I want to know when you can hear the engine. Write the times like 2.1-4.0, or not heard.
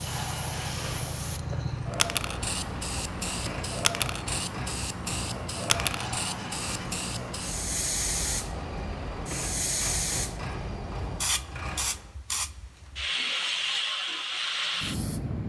0.0-12.1.